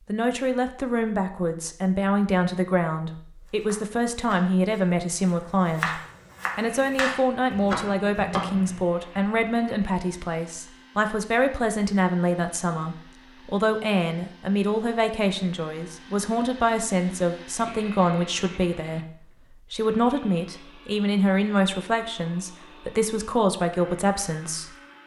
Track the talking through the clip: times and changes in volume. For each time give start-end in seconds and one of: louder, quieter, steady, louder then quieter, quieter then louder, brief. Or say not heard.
0.1-24.7 steady.